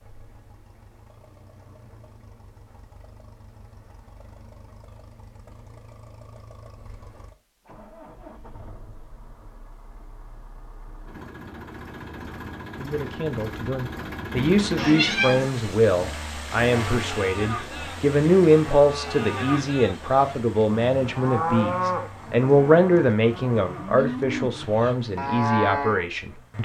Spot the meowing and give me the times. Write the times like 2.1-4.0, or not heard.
14.4-15.5.